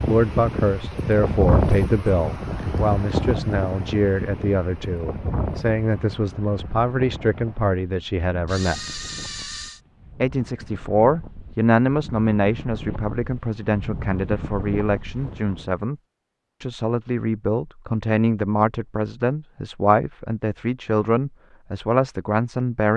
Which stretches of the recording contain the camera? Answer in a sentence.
The camera can be heard from 8.4 to 9.8 s.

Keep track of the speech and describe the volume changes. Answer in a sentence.
The loudness of the speech stays about the same.